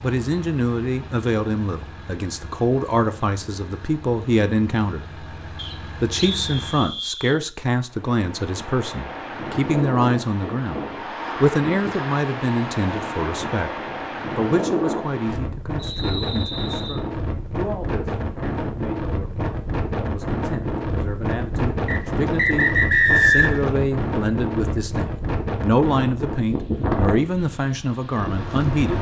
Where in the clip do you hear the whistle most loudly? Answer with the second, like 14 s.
23 s.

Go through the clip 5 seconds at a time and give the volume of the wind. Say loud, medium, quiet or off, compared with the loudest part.
off, medium, loud, loud, loud, loud.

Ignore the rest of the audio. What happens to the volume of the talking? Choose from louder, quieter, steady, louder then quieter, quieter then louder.
quieter then louder.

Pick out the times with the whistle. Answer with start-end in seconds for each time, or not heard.
5.5-7.4, 15.8-17.0, 21.9-23.7.